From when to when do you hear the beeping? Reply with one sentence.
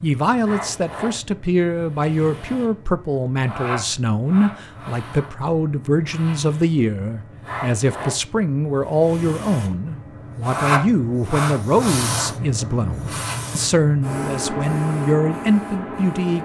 You can't hear the beeping here.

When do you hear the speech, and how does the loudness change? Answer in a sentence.
You can hear the speech from 0.0 to 16.4 s, at a steady volume.